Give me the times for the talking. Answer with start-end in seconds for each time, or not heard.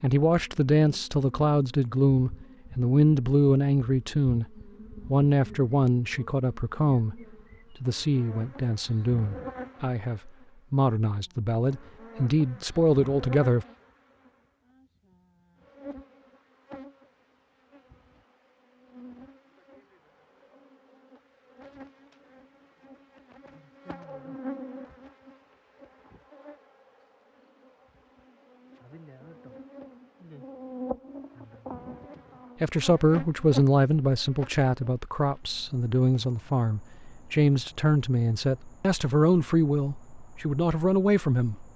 0.0-4.5, 5.0-7.2, 7.8-13.7, 32.6-41.6.